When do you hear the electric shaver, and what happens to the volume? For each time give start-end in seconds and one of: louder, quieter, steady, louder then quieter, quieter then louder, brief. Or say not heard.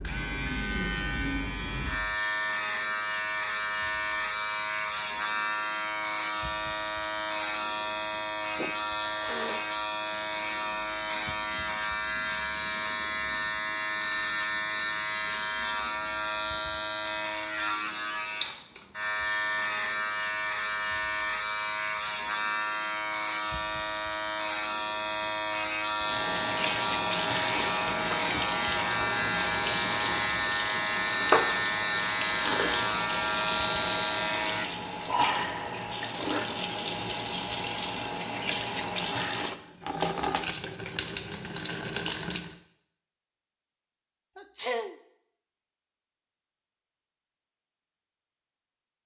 0.0-34.7 steady.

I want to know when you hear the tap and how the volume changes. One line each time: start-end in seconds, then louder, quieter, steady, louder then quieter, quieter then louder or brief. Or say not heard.
25.9-42.5 steady.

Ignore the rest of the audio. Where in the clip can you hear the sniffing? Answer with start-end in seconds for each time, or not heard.
8.6-9.7, 44.4-45.0.